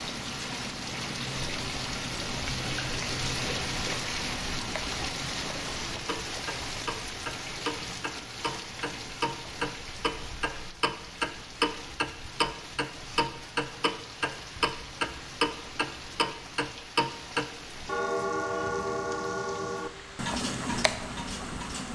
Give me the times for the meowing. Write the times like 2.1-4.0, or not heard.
not heard.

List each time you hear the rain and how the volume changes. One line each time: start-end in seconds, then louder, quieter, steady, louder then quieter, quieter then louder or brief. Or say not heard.
0.0-21.9 quieter.